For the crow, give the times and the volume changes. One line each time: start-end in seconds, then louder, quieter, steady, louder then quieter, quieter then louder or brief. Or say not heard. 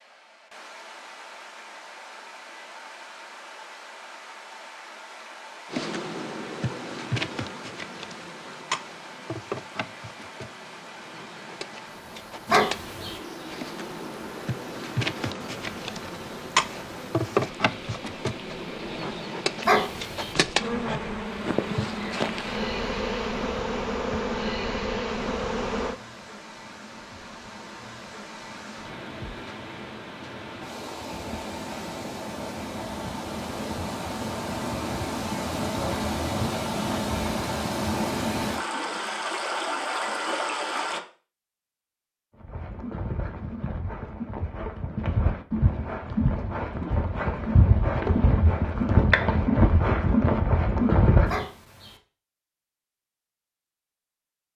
not heard.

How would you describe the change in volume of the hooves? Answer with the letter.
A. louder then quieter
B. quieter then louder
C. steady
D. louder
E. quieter
D.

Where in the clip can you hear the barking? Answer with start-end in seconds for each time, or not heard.
12.4-13.2, 19.6-20.4, 51.2-52.0.